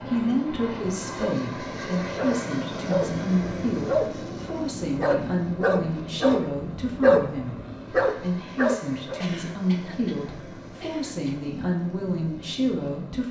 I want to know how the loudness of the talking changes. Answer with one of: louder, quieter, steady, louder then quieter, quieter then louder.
steady.